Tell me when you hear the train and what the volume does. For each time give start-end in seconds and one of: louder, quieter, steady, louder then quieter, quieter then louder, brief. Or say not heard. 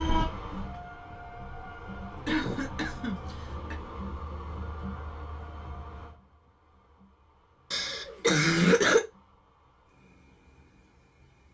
0.0-11.4 quieter.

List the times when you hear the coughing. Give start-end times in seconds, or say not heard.
2.2-3.8, 7.7-9.0.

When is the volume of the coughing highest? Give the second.
9 s.